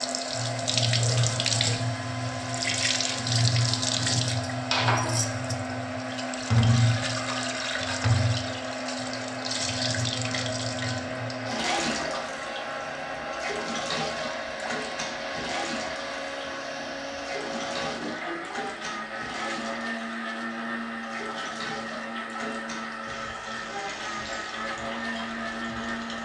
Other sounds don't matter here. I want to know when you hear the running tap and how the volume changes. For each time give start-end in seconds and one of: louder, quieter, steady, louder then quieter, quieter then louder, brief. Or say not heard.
0.0-26.2 quieter.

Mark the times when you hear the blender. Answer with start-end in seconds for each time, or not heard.
0.0-26.2.